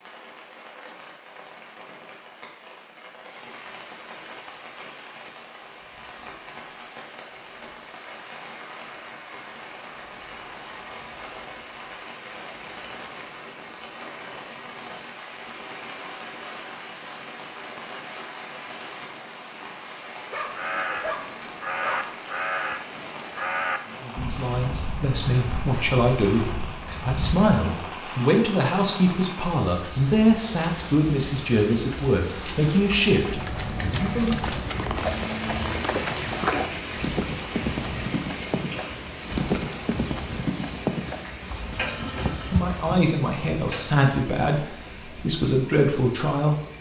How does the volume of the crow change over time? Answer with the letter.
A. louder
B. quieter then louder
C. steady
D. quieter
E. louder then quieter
D.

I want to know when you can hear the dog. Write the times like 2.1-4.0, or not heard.
20.2-22.1.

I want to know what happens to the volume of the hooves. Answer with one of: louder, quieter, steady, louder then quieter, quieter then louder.
steady.